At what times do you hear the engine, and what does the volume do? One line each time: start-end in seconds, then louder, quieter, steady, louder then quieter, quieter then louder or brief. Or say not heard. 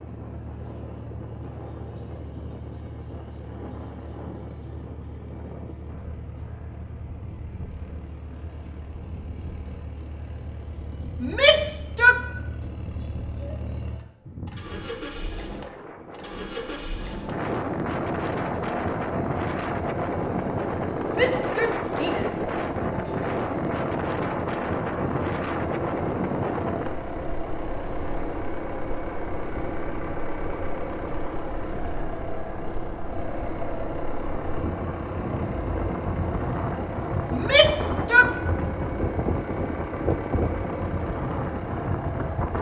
0.0-42.5 louder.